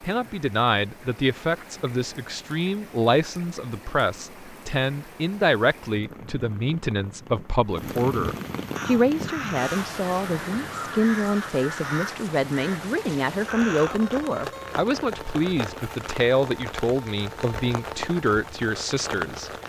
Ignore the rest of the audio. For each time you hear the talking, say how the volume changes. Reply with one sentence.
You can hear the talking from 0.0 to 19.5 s, at a steady volume.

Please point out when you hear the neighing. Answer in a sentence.
You can't hear the neighing here.